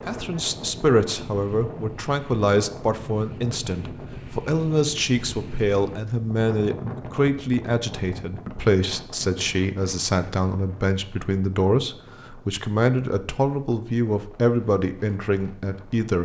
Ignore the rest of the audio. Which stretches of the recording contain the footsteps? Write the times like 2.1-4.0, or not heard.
not heard.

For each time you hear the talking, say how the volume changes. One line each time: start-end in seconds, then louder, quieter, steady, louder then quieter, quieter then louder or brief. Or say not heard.
0.1-16.1 steady.